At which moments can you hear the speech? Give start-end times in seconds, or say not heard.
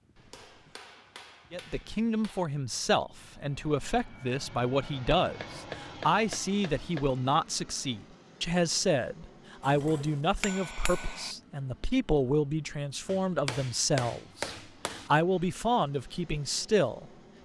1.5-17.4.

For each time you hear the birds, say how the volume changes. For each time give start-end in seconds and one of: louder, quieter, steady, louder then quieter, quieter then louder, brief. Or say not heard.
not heard.